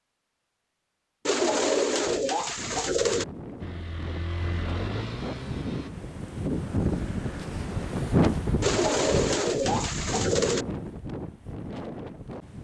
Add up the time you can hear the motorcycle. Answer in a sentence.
You can hear the motorcycle for 2 seconds altogether.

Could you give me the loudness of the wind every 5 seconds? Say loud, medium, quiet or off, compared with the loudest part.
medium, loud, medium.